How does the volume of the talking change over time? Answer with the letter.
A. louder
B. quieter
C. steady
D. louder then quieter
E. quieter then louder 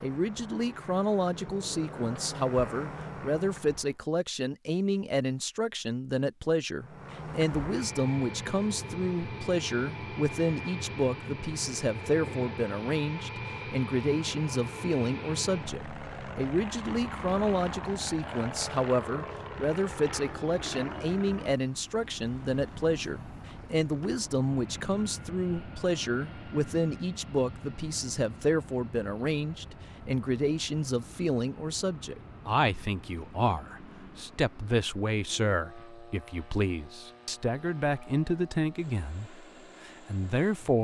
C.